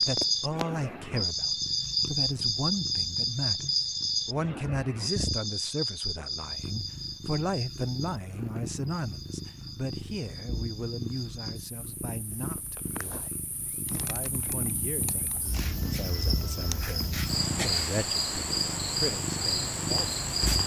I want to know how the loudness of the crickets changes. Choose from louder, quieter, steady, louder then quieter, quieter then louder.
quieter then louder.